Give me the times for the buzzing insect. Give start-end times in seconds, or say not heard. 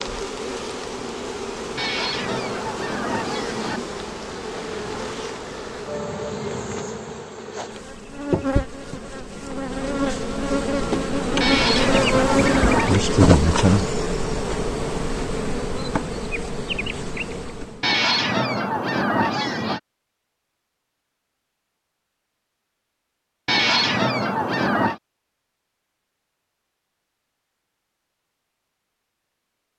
0.0-17.9.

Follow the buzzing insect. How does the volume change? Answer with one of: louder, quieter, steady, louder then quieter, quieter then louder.
louder then quieter.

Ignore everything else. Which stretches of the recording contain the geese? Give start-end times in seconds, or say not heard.
1.8-3.8, 11.4-12.9, 17.8-19.8, 23.4-25.0.